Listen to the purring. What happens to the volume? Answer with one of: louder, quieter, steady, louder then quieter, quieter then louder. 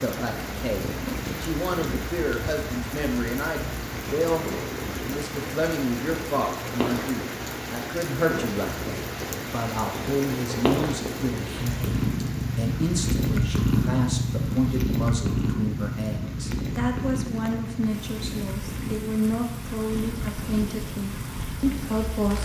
louder then quieter.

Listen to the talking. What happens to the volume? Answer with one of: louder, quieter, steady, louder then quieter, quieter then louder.
steady.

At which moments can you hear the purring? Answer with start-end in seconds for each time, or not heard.
0.2-22.3.